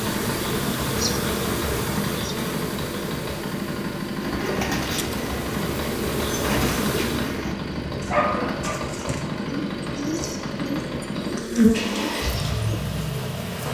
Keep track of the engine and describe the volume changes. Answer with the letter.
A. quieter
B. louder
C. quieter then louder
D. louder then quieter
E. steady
E.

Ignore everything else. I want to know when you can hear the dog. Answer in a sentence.
The dog can be heard from 8.1 to 8.9 s.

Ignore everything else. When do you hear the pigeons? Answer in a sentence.
You can hear the pigeons from 4.2 to 12.8 s.